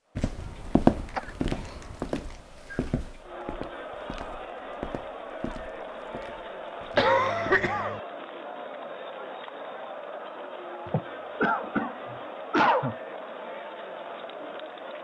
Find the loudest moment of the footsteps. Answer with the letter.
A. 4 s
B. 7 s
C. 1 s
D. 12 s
C.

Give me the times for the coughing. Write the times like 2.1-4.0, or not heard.
0.3-1.9, 7.0-8.0, 10.8-12.9.